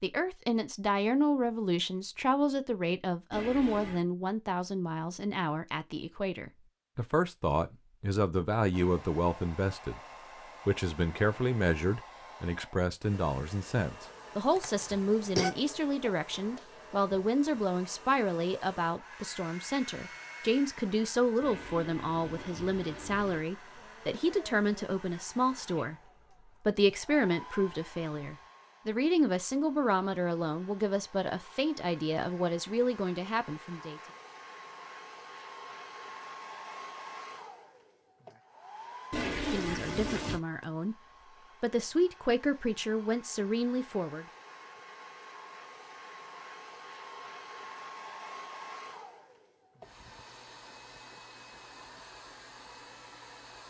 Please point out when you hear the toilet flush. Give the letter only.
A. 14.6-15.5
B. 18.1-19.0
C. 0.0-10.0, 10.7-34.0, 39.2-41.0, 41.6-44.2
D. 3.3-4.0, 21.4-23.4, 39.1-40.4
D.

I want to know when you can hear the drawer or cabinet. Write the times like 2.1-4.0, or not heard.
not heard.